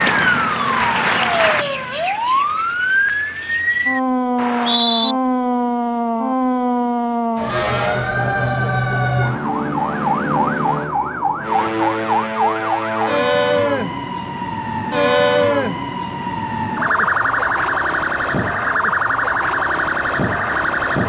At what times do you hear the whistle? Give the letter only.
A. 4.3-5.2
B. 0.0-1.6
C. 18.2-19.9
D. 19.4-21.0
A.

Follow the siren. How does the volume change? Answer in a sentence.
The volume of the siren stays about the same.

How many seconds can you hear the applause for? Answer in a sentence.
The applause can be heard for 2 seconds in total.